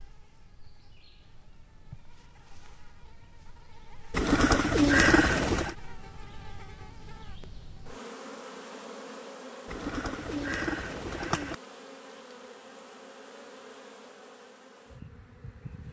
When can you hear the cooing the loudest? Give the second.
5 s.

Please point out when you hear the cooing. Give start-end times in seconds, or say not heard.
4.1-5.8, 9.7-11.6.